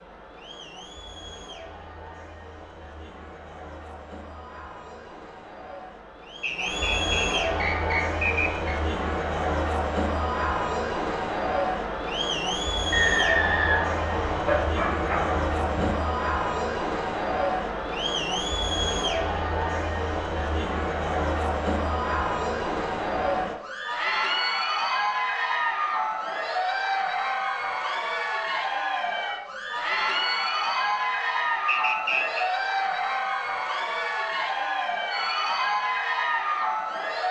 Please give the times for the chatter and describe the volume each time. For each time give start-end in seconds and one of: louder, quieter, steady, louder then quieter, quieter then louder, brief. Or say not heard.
0.0-37.2 louder.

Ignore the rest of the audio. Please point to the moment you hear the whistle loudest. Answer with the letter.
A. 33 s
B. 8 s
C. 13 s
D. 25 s
C.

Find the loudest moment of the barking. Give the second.
15 s.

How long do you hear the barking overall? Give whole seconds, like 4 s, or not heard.
2 s.